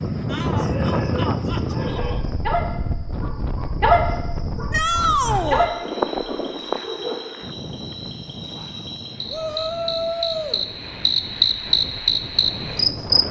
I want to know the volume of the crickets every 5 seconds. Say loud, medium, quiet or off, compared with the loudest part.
quiet, quiet, loud.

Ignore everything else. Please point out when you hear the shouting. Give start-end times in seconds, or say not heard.
0.3-2.2, 4.7-5.7, 9.3-10.6.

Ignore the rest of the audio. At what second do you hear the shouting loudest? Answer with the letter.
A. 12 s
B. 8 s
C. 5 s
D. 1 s
C.